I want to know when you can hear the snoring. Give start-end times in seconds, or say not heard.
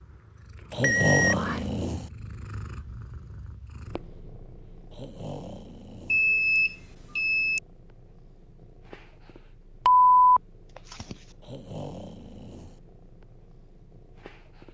0.7-2.1, 4.9-6.3, 11.4-12.8.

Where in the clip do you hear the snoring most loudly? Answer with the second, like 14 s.
1 s.